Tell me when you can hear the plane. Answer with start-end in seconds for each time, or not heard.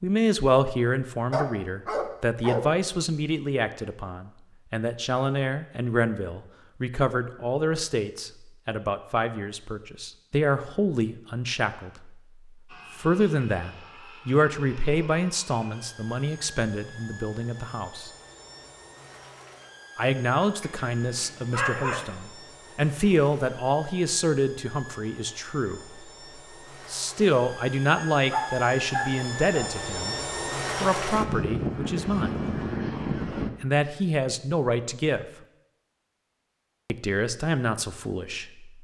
12.7-33.5.